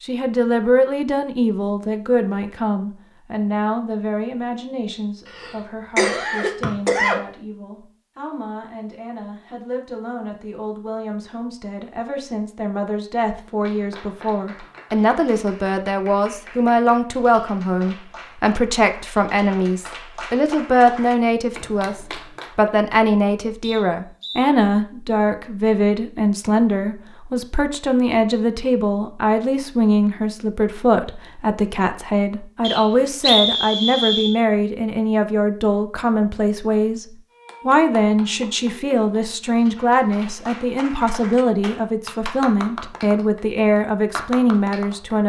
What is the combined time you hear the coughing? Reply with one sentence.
You can hear the coughing for 2 seconds altogether.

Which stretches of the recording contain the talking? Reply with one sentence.
The talking can be heard from 0.0 to 45.2 s.